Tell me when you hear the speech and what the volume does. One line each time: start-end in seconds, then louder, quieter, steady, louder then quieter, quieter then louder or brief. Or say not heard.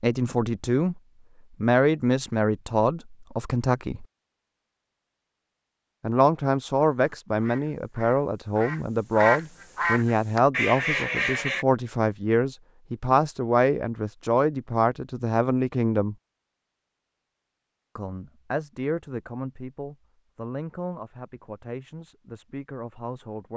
0.0-1.0 brief
1.6-4.0 brief
6.0-16.1 steady
17.9-23.5 quieter.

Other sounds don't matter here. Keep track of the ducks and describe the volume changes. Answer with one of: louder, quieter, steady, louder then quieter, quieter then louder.
louder.